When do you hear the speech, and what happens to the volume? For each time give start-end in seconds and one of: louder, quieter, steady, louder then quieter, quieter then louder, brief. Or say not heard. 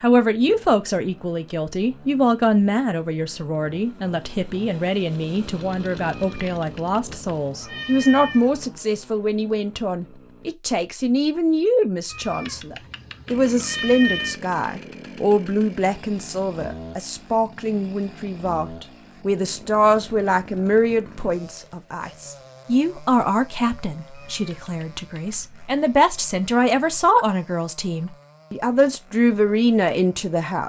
0.0-30.6 steady.